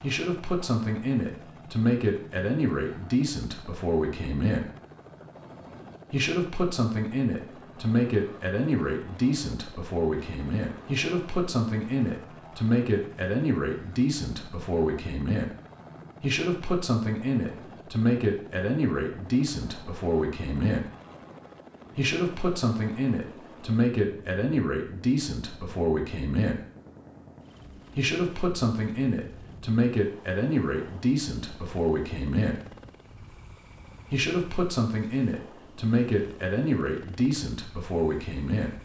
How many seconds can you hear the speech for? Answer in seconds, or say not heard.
33 s.